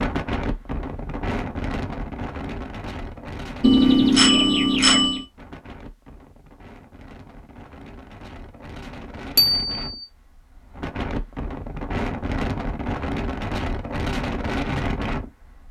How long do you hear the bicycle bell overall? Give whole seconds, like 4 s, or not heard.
2 s.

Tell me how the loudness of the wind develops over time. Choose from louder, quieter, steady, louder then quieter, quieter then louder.
quieter then louder.